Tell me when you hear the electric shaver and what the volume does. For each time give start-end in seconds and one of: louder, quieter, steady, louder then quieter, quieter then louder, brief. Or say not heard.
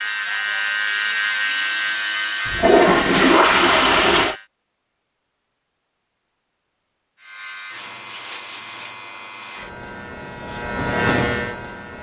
0.0-4.5 quieter
7.2-11.9 louder.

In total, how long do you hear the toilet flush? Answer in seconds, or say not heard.
2 s.